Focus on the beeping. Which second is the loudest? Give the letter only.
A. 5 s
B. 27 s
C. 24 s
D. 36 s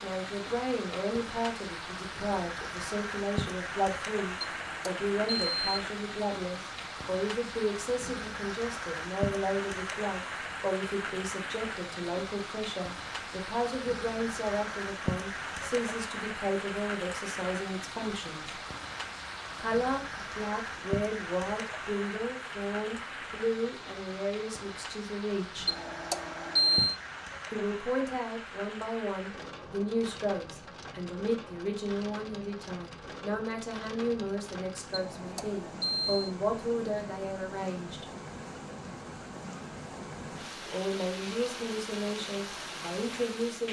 B.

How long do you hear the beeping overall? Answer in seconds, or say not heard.
4 s.